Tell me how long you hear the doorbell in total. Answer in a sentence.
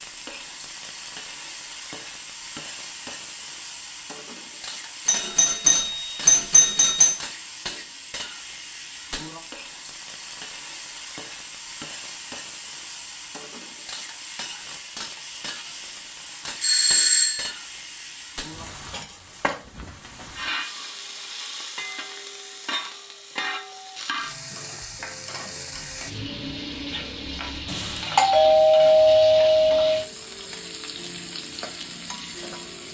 You can hear the doorbell for 5 seconds altogether.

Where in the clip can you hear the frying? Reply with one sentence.
You can hear the frying from 0.0 to 32.8 s.